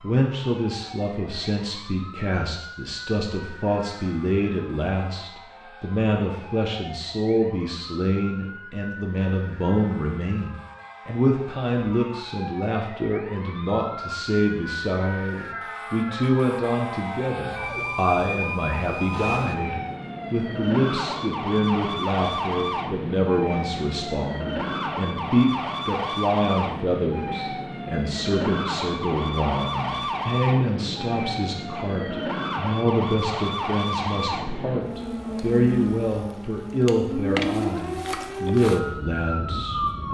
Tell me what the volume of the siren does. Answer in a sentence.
The volume of the siren goes up.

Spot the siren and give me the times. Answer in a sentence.
The siren can be heard from 0.0 to 40.0 s.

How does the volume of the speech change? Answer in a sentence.
The volume of the speech stays about the same.